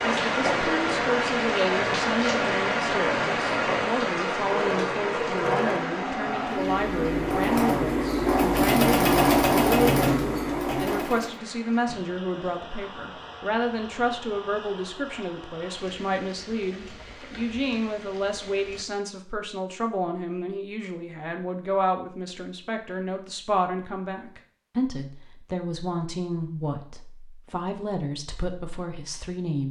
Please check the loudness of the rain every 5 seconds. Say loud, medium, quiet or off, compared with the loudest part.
loud, medium, quiet, quiet, off, off.